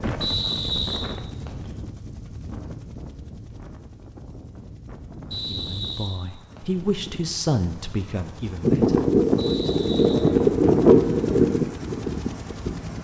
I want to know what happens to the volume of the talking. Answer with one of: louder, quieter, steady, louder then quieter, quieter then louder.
louder then quieter.